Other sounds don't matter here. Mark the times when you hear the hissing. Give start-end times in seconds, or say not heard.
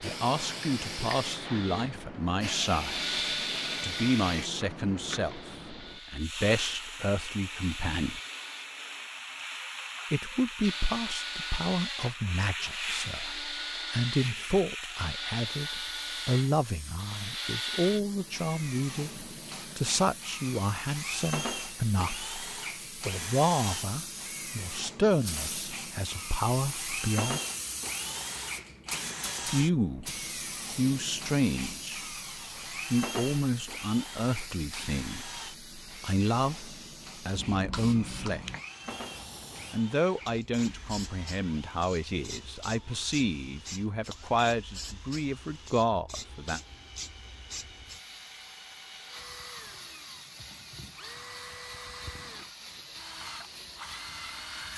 0.0-54.7.